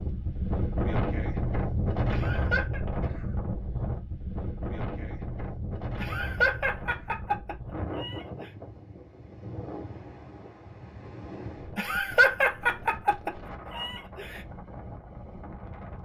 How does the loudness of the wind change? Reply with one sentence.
The volume of the wind goes down.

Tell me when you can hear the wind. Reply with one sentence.
You can hear the wind from 0.0 to 16.0 s.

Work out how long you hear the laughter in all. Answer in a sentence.
You can hear the laughter for 6 seconds altogether.